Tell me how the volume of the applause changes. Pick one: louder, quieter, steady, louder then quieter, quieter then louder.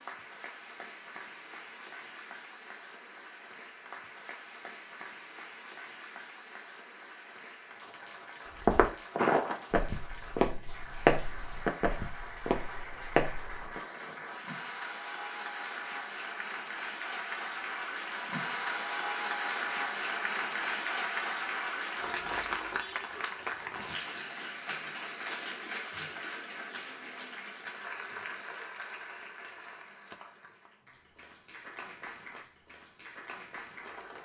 louder then quieter.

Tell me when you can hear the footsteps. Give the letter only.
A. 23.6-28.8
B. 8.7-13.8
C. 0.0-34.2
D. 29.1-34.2
B.